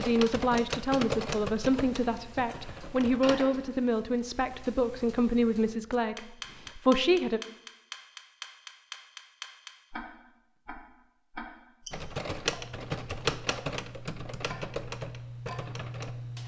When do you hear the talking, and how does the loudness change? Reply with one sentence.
You can hear the talking from 0.0 to 7.4 s, at a steady volume.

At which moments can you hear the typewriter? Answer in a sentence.
The typewriter can be heard from 0.0 to 3.5 s and from 11.9 to 16.4 s.